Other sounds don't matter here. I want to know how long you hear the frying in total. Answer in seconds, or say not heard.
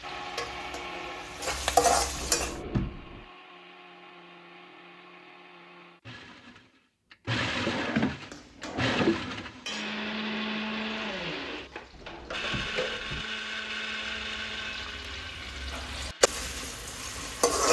12 s.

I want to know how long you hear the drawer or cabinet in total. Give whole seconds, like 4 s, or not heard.
4 s.